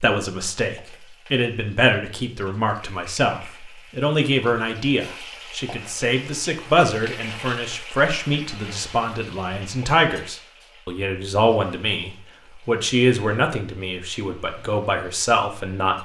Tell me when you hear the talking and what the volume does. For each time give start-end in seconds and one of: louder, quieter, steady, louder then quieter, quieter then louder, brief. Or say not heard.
0.0-16.0 steady.